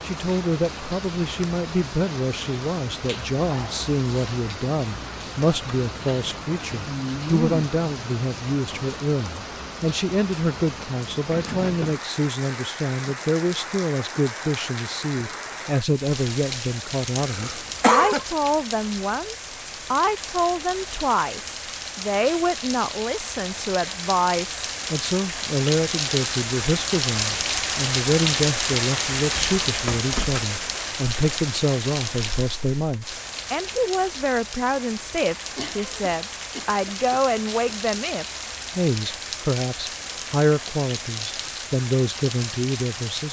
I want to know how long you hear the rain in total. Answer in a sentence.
You can hear the rain for 43 seconds altogether.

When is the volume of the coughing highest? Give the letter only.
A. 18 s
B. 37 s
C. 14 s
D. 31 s
A.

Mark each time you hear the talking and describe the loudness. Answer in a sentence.
You can hear the talking from 0.0 to 43.2 s, at a steady volume.